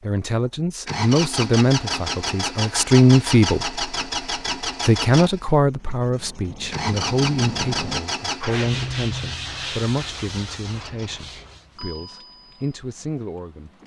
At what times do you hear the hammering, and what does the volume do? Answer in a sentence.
You can't hear the hammering here.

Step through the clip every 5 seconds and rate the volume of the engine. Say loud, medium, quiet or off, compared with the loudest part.
loud, loud, quiet.